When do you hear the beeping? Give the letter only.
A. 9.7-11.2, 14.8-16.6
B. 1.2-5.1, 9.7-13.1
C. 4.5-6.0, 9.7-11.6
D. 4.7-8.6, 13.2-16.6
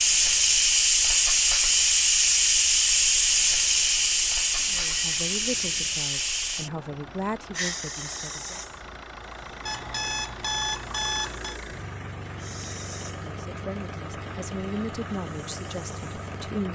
C.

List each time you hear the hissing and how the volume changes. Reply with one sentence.
The hissing can be heard from 0.0 to 16.5 s, getting quieter.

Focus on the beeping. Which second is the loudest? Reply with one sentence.
The volume of the beeping peaks at 11 seconds.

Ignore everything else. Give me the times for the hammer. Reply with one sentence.
You can't hear the hammer here.